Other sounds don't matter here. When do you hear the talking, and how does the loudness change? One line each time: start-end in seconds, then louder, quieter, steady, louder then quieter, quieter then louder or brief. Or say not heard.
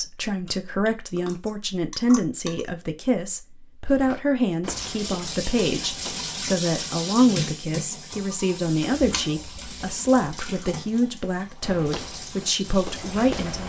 0.0-13.6 steady.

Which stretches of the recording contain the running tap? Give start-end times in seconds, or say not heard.
4.7-13.4.